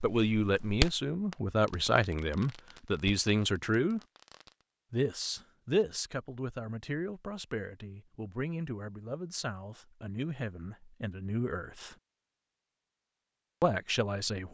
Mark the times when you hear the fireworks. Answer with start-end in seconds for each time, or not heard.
0.0-4.7.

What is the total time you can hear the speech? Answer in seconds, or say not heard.
12 s.